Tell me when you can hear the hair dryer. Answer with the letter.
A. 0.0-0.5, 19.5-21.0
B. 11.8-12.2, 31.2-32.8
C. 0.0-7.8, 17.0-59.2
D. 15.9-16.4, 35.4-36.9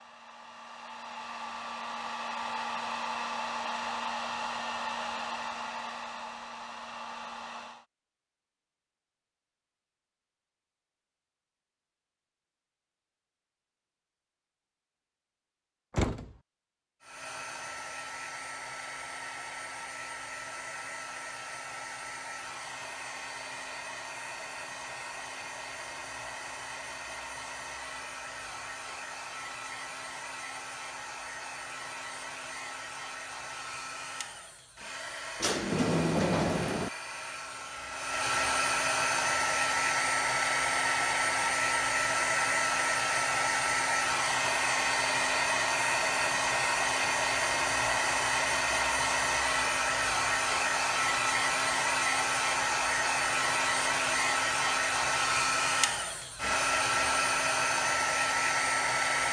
C.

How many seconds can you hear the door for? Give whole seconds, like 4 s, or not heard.
2 s.